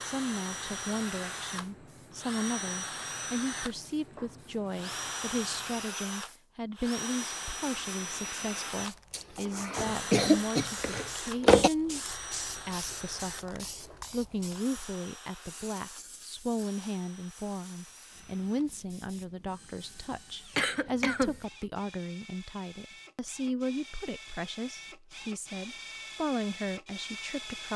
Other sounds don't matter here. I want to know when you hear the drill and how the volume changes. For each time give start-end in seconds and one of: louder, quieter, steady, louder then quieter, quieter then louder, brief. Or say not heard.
0.0-27.7 quieter then louder.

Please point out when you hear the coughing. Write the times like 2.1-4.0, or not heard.
9.1-11.7, 20.6-21.4.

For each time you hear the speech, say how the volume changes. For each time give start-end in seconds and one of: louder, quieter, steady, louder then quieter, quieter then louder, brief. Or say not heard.
0.0-27.7 steady.